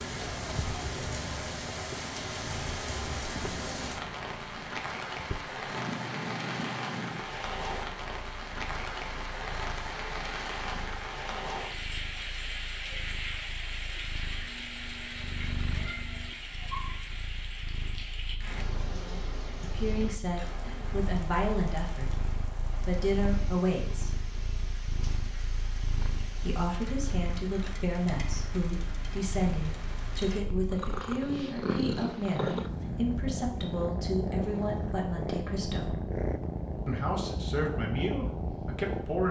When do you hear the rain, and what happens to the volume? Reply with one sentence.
You can hear the rain from 0.0 to 30.4 s, getting quieter.